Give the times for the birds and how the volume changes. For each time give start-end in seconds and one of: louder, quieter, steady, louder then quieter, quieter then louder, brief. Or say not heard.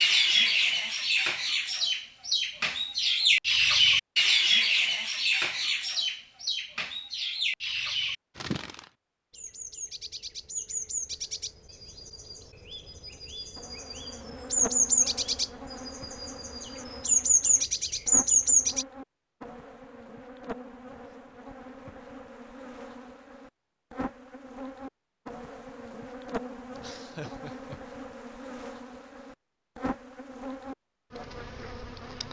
0.0-18.9 quieter then louder.